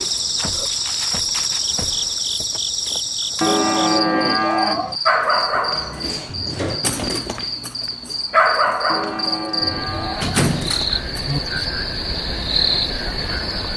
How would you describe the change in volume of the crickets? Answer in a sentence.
The volume of the crickets goes down, then up.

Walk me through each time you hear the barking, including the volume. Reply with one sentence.
The barking can be heard from 5.0 to 11.7 s, getting louder then quieter.